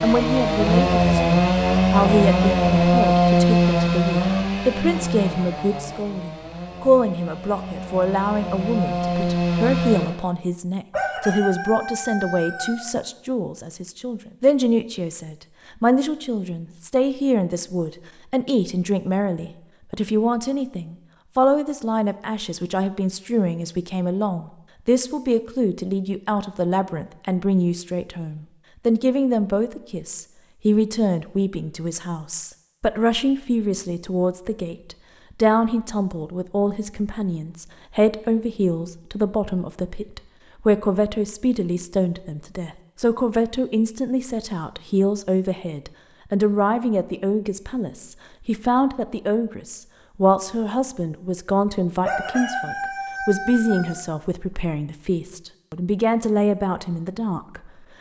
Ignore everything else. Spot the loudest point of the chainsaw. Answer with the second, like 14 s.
3 s.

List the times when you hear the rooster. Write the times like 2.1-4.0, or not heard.
10.9-12.8, 52.0-54.0.